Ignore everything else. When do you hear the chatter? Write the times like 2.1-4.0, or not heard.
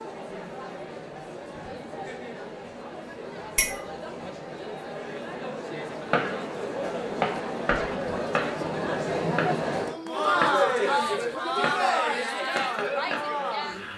0.0-13.9.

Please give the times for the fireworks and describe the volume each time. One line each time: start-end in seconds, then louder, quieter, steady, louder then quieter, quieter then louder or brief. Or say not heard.
6.1-13.9 quieter.